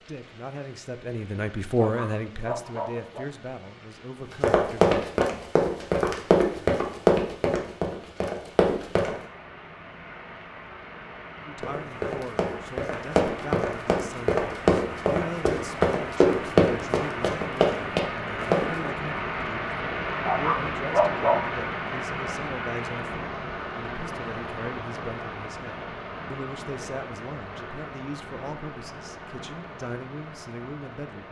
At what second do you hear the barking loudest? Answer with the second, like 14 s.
21 s.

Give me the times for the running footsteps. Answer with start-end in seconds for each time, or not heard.
4.4-9.1, 11.6-18.9.